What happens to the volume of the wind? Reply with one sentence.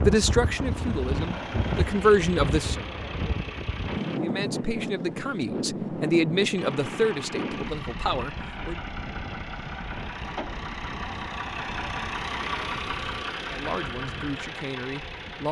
The volume of the wind goes down.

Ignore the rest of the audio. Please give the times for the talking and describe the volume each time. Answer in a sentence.
You can hear the talking briefly from 0.0 to 2.8 s; from 4.2 to 8.8 s, getting louder then quieter; and briefly from 13.4 to 15.4 s.